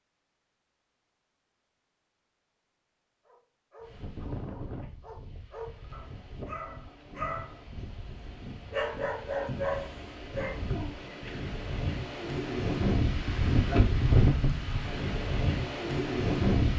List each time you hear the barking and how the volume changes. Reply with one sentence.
You can hear the barking from 3.2 to 10.9 s, getting louder.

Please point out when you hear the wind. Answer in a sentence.
You can hear the wind from 3.8 to 16.7 s.